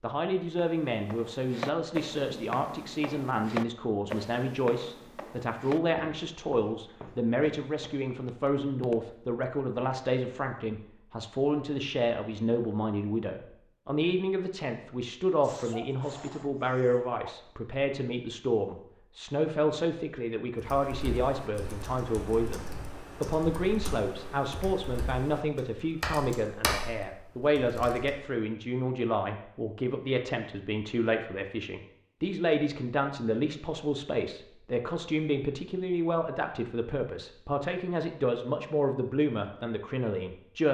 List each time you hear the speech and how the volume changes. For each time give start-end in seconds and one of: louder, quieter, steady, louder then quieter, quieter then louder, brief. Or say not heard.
0.0-40.6 steady.